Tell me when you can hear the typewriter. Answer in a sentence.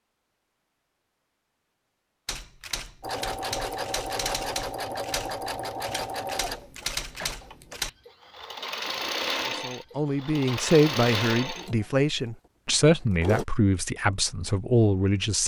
You can hear the typewriter from 2.2 to 7.9 s.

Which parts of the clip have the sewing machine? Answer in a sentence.
You can hear the sewing machine from 3.0 to 13.4 s.